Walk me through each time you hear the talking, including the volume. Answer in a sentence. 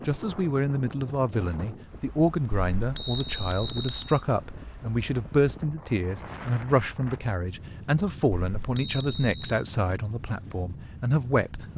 The talking can be heard from 0.1 to 11.7 s, at a steady volume.